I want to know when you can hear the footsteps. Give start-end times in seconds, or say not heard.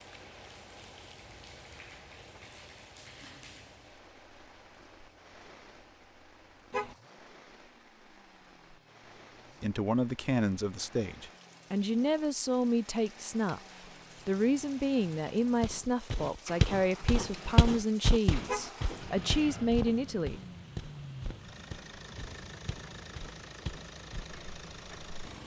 15.6-25.1.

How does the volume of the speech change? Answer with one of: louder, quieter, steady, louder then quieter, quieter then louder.
steady.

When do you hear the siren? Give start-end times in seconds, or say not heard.
not heard.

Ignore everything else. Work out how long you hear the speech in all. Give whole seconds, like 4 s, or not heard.
10 s.